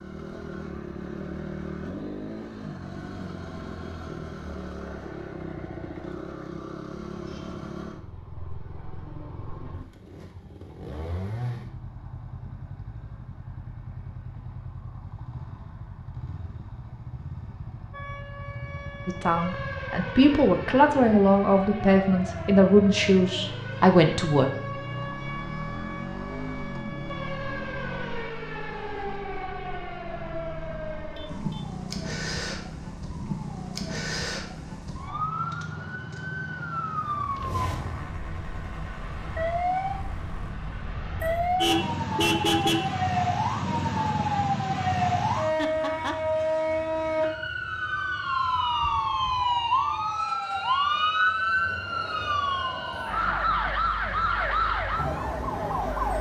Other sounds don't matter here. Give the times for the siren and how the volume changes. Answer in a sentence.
The siren can be heard from 17.9 to 56.1 s, getting louder.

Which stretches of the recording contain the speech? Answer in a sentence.
The speech can be heard from 19.1 to 24.5 s.